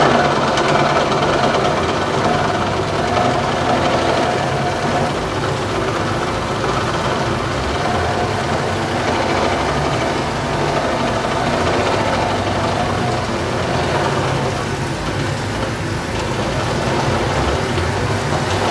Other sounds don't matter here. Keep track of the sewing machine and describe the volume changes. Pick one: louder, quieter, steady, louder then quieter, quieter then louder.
quieter.